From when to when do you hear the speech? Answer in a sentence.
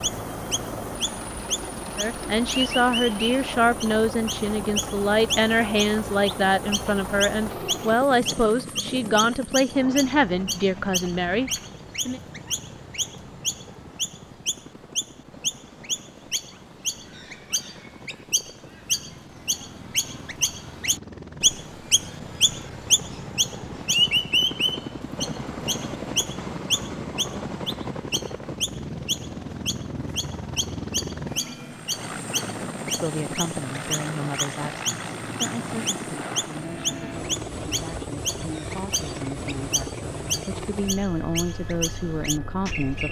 The speech can be heard from 1.9 to 12.2 s and from 32.9 to 43.0 s.